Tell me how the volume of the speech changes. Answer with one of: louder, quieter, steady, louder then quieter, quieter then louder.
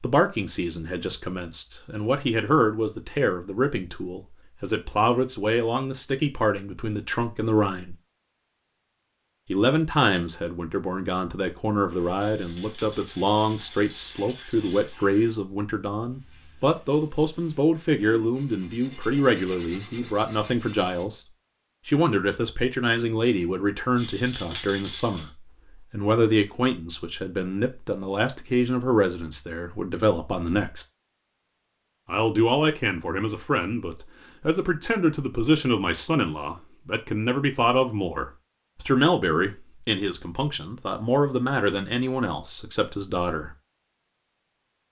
steady.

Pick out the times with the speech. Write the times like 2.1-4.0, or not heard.
0.0-8.0, 9.5-21.2, 21.9-25.3, 25.9-30.9, 32.0-43.5.